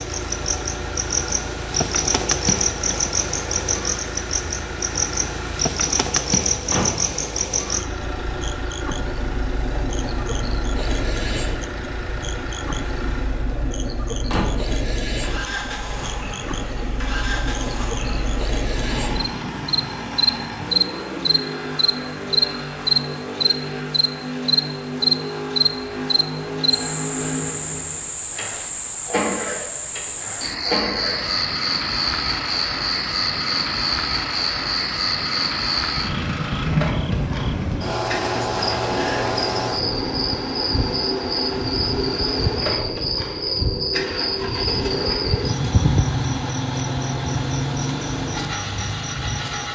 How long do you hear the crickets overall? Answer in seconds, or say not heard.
50 s.